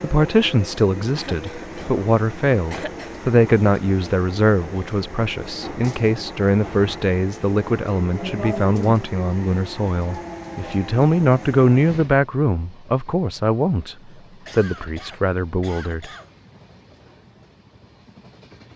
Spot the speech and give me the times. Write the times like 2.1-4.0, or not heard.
0.0-16.1.